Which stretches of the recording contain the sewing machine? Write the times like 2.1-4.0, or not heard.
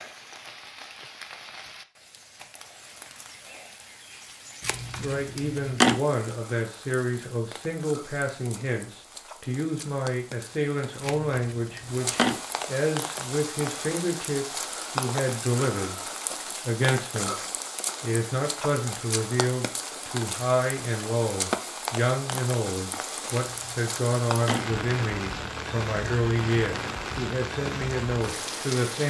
not heard.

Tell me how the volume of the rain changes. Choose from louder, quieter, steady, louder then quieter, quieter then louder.
louder.